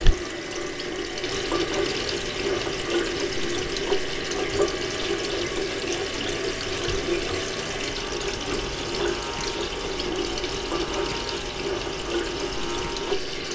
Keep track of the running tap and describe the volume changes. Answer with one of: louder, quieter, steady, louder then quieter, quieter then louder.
steady.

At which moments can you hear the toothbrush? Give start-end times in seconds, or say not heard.
not heard.